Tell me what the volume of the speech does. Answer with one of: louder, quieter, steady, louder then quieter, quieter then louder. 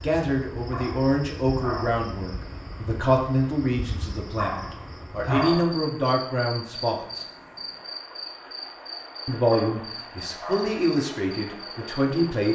steady.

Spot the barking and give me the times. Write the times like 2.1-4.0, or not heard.
0.7-2.0, 4.3-5.8, 9.5-10.9.